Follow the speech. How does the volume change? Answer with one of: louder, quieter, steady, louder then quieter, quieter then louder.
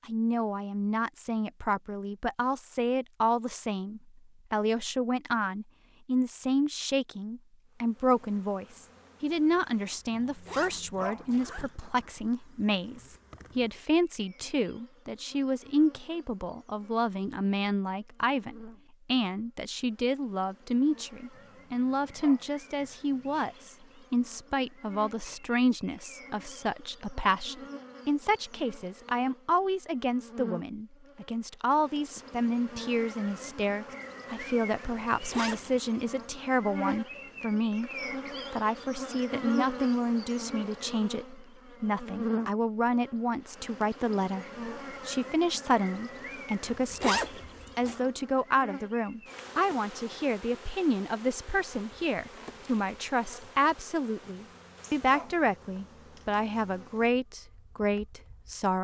steady.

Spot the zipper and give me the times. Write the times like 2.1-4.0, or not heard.
10.2-11.7, 35.1-35.8, 46.6-48.0.